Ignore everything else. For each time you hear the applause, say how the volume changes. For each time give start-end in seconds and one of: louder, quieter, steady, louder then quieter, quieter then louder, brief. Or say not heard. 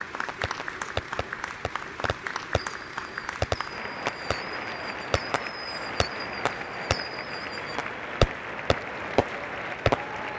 0.0-10.3 steady.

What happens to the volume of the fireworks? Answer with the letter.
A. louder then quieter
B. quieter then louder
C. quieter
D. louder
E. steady
B.